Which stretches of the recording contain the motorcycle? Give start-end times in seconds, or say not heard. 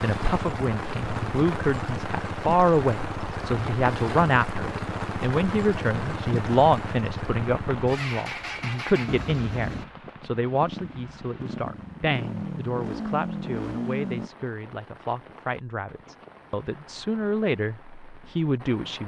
0.0-14.3.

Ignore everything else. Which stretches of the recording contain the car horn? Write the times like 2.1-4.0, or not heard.
not heard.